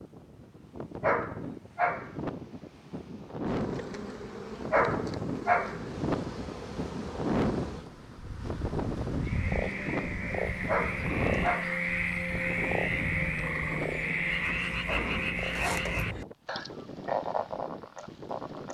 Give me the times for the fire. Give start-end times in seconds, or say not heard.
not heard.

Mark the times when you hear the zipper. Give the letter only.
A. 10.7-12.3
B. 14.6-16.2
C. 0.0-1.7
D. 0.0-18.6
B.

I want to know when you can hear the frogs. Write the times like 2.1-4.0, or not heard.
9.2-18.6.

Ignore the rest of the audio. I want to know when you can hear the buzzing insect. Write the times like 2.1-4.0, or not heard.
3.5-14.3.